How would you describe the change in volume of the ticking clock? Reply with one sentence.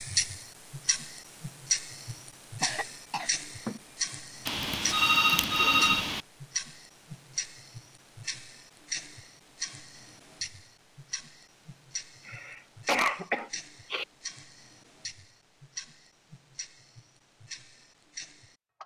The loudness of the ticking clock goes down.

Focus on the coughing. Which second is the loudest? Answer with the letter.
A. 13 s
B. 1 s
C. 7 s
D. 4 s
A.